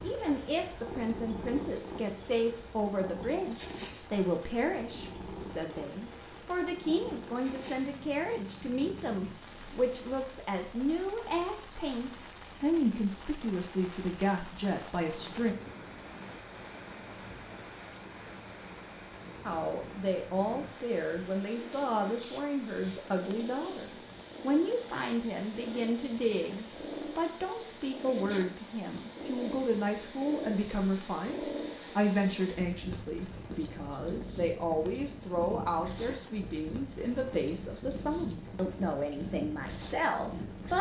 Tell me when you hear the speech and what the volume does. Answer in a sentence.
You can hear the speech from 0.0 to 15.6 s, at a steady volume; and from 19.4 to 40.7 s, at a steady volume.